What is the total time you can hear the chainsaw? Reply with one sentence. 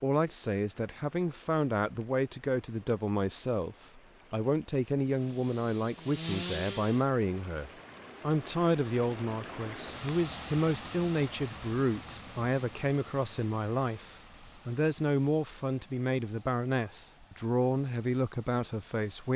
You can hear the chainsaw for 2 seconds altogether.